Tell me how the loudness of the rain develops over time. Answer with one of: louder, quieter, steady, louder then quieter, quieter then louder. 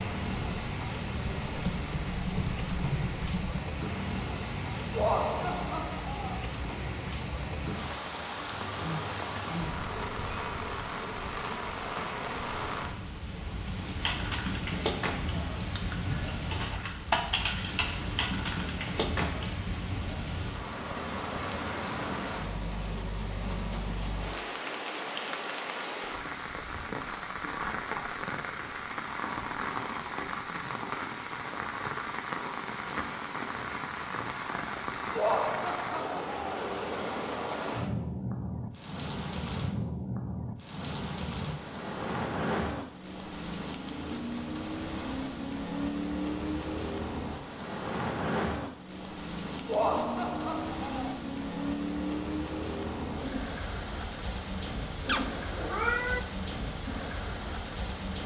steady.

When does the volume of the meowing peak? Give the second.
56 s.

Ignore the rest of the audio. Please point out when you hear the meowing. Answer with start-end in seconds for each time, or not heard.
8.5-10.6, 55.0-56.2.